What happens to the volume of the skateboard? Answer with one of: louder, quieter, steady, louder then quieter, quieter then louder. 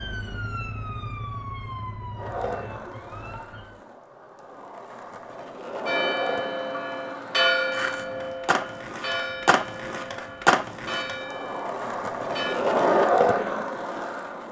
louder.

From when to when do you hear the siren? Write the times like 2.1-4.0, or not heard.
0.0-3.8.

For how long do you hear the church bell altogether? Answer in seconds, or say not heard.
7 s.